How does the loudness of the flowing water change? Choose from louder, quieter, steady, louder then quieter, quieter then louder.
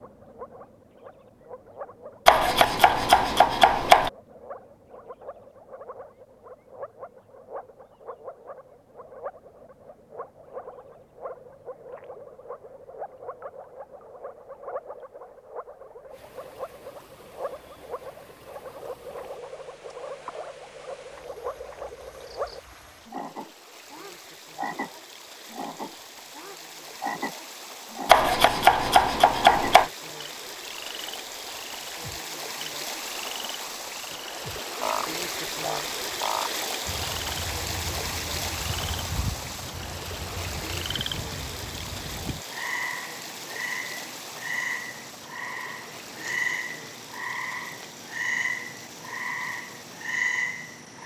louder then quieter.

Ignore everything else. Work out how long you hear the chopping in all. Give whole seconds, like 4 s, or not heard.
4 s.